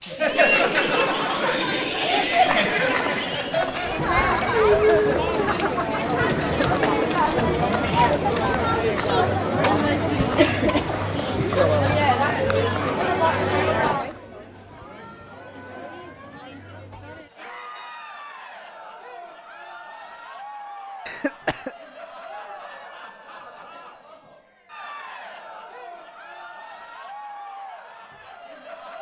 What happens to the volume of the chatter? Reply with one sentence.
The loudness of the chatter goes down.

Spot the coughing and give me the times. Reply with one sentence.
You can hear the coughing from 6.4 to 8.2 s and from 21.1 to 21.8 s.